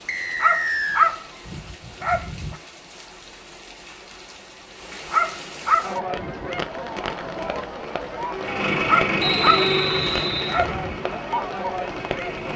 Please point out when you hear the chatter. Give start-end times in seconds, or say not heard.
5.8-12.5.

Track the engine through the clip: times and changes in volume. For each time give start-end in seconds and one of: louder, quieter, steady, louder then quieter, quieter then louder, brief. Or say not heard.
8.3-12.5 quieter.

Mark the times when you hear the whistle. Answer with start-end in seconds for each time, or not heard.
0.1-1.1, 9.2-10.7.